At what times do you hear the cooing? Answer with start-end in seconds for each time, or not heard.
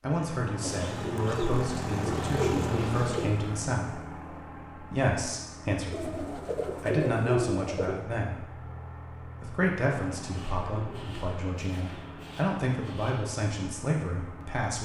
0.6-3.4, 5.9-8.1, 10.3-13.2.